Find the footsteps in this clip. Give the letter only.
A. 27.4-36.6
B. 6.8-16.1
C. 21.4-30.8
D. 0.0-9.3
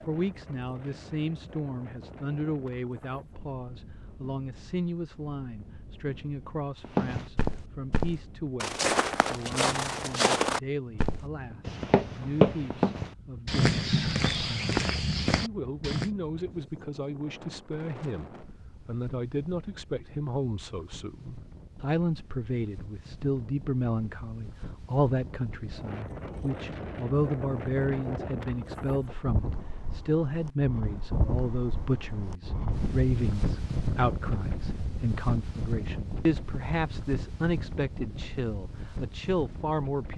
B.